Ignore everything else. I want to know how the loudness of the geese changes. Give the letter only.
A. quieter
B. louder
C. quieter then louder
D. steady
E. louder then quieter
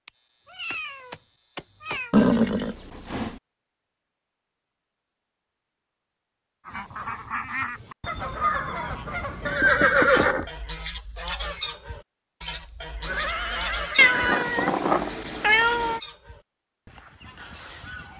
A.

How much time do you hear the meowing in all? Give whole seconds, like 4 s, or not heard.
5 s.